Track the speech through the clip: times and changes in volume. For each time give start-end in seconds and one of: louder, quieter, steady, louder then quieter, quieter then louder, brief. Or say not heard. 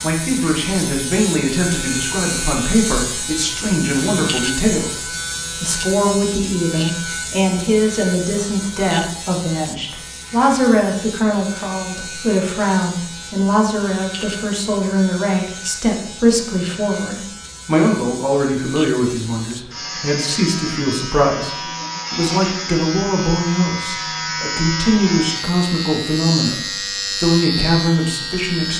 0.0-28.7 steady.